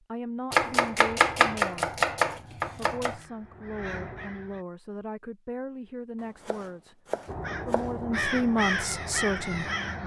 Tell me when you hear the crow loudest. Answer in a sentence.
The volume of the crow peaks at 9 seconds.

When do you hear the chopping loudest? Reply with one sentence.
The volume of the chopping peaks at 1 second.